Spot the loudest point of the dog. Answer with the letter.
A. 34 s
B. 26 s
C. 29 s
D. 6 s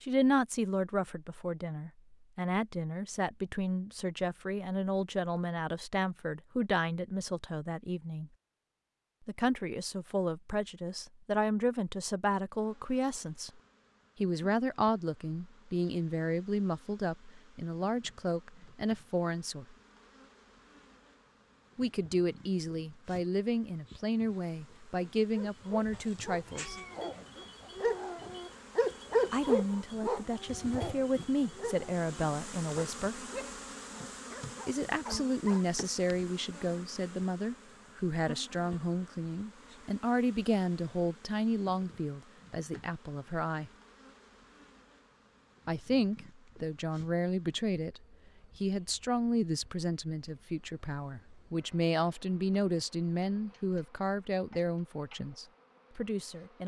C.